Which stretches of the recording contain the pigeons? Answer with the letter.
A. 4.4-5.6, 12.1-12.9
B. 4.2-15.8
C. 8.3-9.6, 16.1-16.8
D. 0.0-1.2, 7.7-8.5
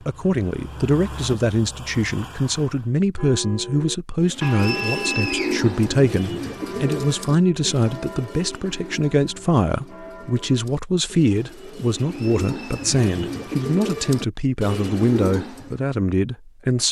B.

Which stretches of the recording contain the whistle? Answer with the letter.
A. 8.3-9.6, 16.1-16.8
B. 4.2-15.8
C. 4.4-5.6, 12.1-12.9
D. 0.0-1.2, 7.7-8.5
C.